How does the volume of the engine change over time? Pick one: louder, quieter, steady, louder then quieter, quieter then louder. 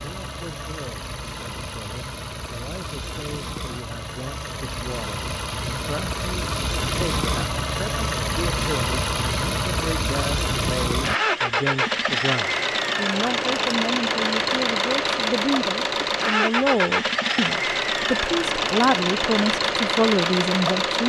louder.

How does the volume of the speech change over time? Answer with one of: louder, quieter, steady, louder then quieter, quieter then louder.
louder.